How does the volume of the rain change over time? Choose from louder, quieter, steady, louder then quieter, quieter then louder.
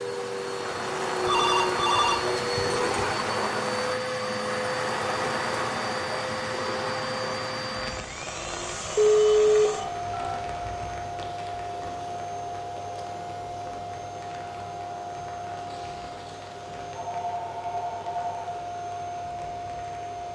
quieter.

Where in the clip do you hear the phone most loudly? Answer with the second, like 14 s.
9 s.